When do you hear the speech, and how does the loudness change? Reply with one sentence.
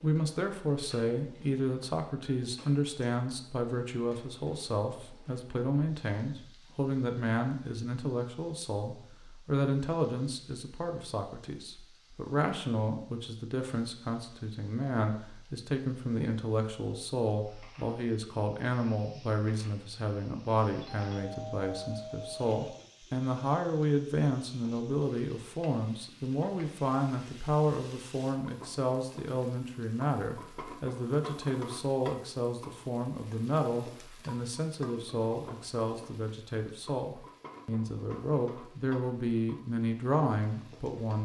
You can hear the speech from 0.0 to 41.2 s, at a steady volume.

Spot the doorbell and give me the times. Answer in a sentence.
You can hear the doorbell from 20.8 to 22.7 s.